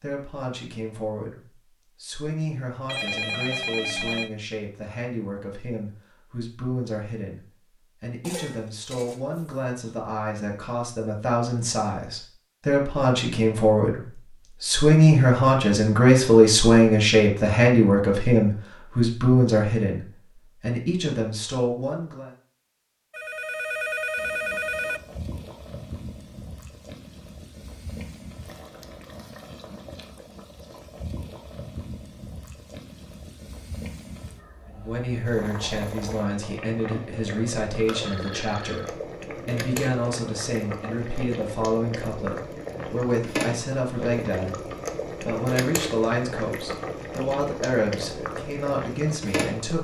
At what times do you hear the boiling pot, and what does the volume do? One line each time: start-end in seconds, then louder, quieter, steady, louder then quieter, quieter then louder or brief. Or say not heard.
24.1-49.7 louder.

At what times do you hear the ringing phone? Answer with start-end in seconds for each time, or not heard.
2.9-4.3, 23.1-25.0, 37.9-39.0.